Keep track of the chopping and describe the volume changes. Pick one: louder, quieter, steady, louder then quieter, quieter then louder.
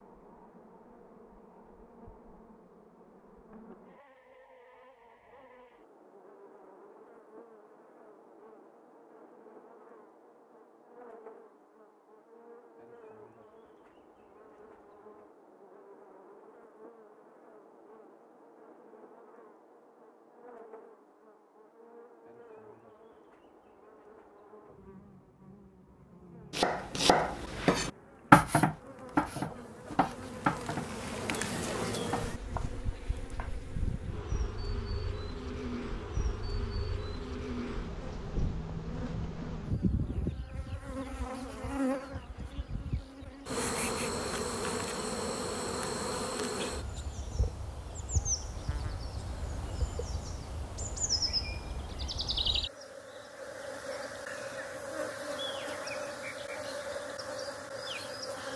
louder then quieter.